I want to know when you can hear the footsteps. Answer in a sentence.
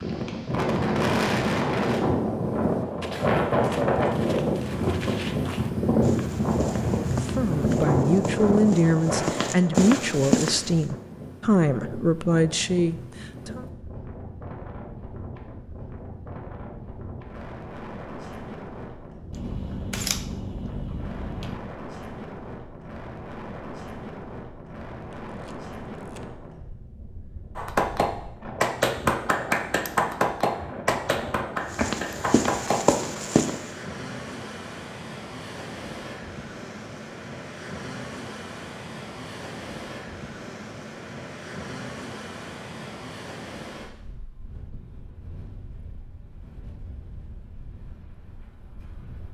The footsteps can be heard from 3.0 to 10.9 s and from 31.7 to 33.7 s.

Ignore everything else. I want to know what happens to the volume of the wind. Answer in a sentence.
The volume of the wind goes down.